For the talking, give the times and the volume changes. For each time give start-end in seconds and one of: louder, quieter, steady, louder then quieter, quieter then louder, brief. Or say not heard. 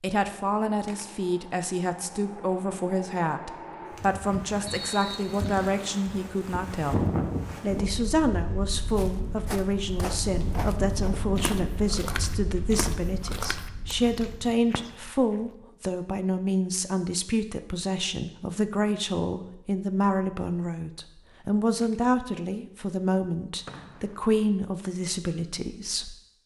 0.0-26.1 steady.